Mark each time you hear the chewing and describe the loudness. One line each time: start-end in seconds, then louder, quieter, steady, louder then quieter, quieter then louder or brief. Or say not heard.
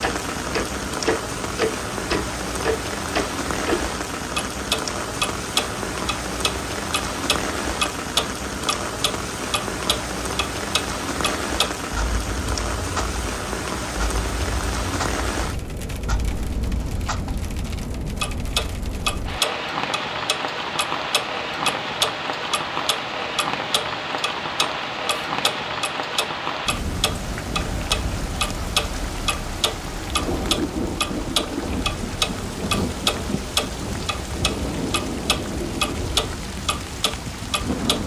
not heard.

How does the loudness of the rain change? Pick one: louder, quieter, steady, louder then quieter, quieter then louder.
steady.